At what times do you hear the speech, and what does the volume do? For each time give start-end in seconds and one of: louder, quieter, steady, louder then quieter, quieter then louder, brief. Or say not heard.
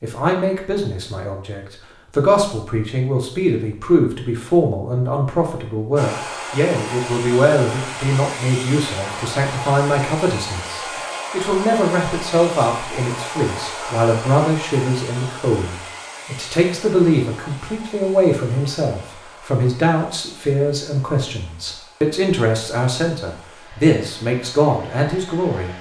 0.0-25.7 steady.